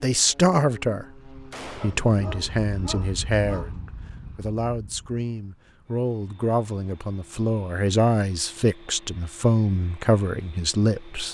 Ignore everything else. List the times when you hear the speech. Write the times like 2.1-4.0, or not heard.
0.0-1.1, 1.8-11.2.